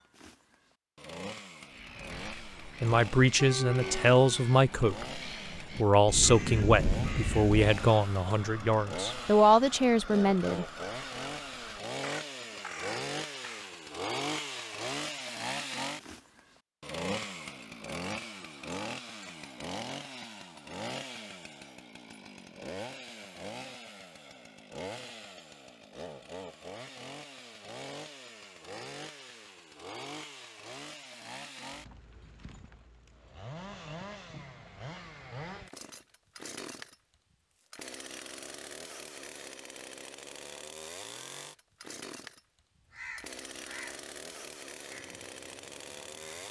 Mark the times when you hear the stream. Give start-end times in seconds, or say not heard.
not heard.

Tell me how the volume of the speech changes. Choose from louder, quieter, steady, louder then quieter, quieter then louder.
steady.